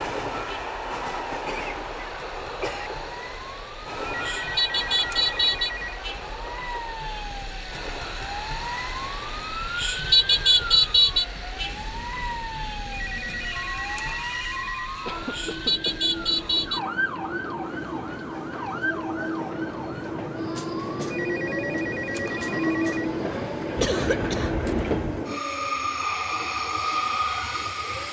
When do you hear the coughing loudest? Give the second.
24 s.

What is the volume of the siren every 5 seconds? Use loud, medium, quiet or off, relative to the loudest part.
medium, medium, loud, medium, quiet, quiet.